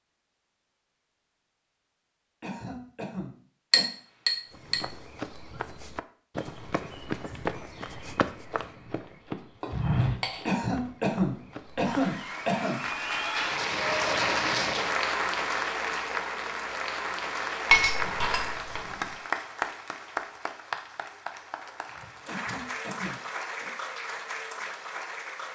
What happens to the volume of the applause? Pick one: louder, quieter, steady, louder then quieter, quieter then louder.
quieter.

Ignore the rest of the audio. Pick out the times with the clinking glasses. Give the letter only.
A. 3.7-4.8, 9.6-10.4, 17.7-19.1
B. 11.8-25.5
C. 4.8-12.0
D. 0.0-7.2
A.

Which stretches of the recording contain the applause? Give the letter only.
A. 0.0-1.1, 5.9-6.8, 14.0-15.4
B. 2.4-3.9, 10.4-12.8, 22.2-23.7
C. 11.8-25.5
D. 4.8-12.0
C.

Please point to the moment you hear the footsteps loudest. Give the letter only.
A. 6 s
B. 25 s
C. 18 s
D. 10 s
D.